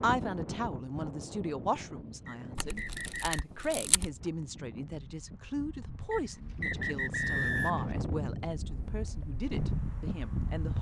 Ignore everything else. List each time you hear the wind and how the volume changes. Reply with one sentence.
The wind can be heard from 0.0 to 10.7 s, getting quieter then louder.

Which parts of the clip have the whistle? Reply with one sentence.
You can hear the whistle from 2.2 to 3.4 s and from 6.1 to 7.9 s.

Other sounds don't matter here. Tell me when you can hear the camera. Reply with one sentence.
The camera can be heard from 2.5 to 4.1 s.